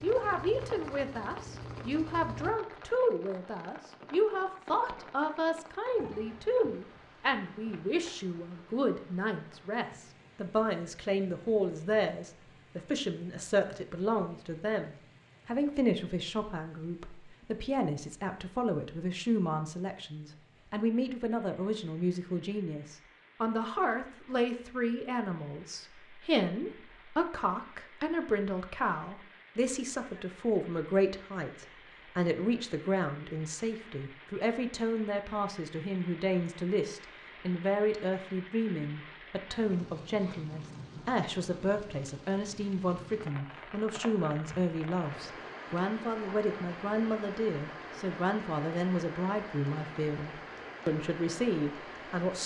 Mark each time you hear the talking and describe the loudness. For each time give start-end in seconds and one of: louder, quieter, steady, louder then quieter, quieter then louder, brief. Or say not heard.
0.0-52.4 steady.